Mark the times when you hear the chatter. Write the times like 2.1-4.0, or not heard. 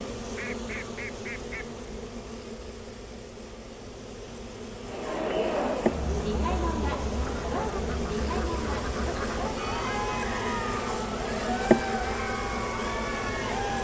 4.8-13.7.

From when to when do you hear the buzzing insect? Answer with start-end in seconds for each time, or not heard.
0.0-13.7.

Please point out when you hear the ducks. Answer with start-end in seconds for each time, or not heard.
0.3-1.6, 7.2-9.5.